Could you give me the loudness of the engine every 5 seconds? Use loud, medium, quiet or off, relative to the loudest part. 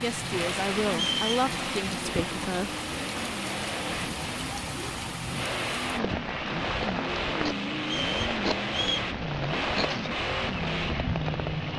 medium, loud, loud.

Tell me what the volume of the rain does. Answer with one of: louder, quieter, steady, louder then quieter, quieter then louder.
steady.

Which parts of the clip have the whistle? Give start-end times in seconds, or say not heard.
0.9-1.4, 7.8-9.1.